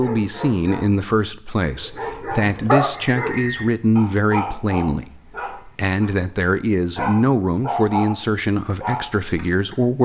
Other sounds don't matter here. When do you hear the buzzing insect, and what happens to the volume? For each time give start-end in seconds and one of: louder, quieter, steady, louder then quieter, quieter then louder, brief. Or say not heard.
not heard.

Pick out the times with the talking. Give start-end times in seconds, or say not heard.
0.0-9.9.